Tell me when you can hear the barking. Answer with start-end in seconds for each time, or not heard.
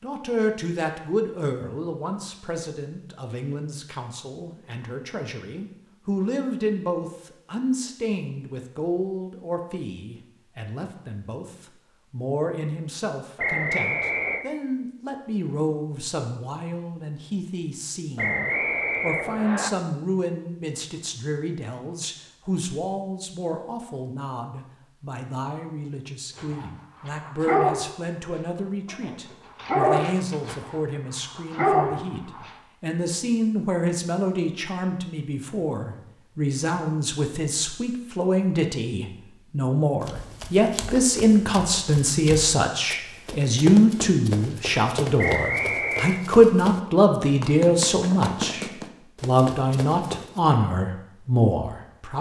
26.4-32.6.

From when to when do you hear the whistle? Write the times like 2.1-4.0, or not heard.
13.3-14.4, 18.1-19.7, 45.1-46.2.